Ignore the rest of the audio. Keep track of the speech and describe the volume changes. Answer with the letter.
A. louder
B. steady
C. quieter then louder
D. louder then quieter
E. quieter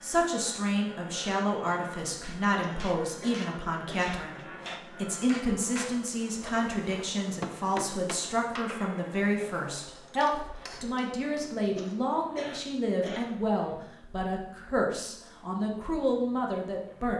B.